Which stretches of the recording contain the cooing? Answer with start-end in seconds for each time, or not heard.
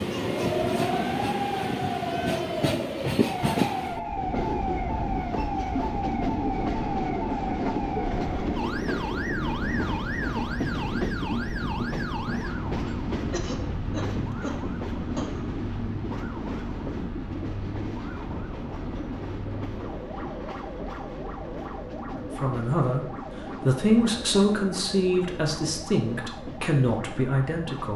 not heard.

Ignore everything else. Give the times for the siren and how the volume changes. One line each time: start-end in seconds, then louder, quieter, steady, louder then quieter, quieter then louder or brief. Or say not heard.
0.0-27.9 quieter.